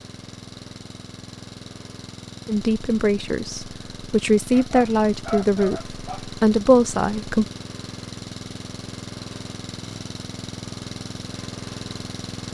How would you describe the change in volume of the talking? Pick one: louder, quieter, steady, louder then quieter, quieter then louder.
louder.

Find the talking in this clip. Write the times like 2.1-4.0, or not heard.
2.5-7.5.